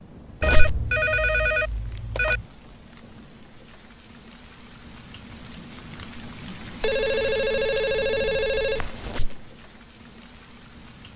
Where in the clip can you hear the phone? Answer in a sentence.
The phone can be heard from 0.4 to 2.5 s and from 6.8 to 9.2 s.